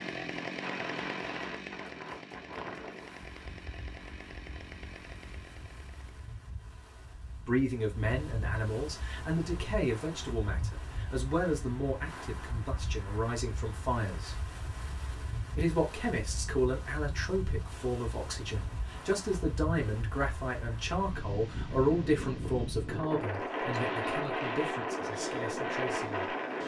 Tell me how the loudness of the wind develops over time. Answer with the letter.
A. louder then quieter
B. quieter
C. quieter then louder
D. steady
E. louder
E.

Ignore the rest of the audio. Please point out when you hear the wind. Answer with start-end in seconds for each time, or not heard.
0.2-26.6.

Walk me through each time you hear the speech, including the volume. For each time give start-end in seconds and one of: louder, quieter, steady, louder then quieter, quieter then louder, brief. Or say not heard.
7.4-14.3 steady
15.6-26.2 quieter.